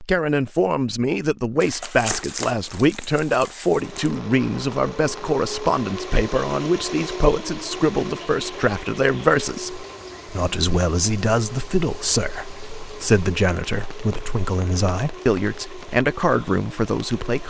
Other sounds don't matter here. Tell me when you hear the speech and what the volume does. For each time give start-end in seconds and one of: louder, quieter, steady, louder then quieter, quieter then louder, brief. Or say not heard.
0.0-17.4 steady.